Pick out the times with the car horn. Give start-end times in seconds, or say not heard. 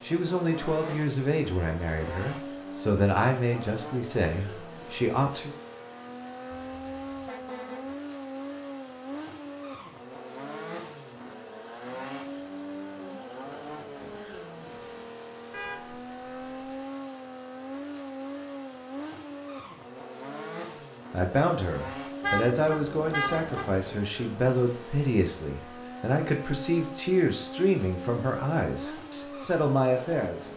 6.5-8.0, 15.5-16.8, 22.2-23.9.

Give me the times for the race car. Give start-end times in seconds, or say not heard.
0.0-30.5.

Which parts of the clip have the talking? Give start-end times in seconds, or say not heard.
0.0-5.5, 21.1-30.5.